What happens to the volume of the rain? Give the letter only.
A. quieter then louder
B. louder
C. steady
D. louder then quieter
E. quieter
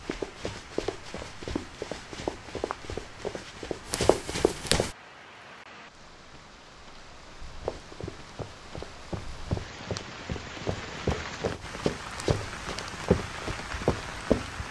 B.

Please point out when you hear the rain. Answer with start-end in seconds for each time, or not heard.
0.0-14.6.